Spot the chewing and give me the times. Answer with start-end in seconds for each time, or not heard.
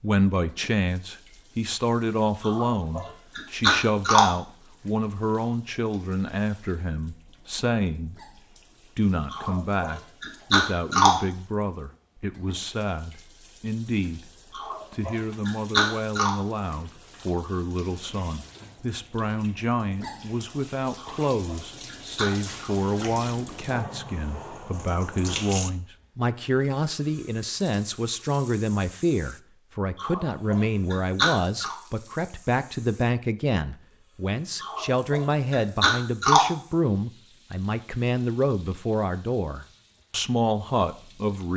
2.4-4.2, 9.3-11.1, 14.5-16.3, 20.9-22.7, 29.9-31.8, 34.6-36.4.